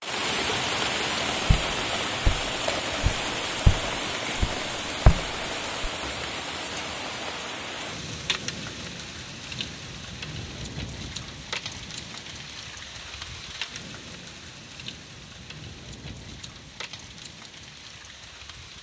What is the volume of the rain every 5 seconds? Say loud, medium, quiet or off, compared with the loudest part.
loud, medium, medium, quiet.